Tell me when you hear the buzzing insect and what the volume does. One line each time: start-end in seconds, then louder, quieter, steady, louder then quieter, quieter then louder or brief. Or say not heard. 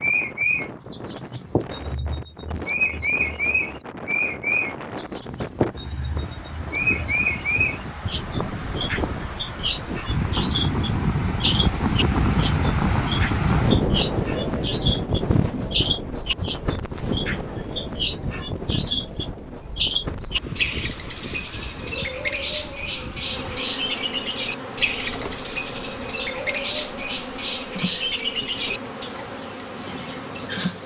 23.1-30.8 steady.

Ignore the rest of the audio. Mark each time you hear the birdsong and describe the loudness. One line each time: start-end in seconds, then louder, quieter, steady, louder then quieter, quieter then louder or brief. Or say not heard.
0.0-30.8 steady.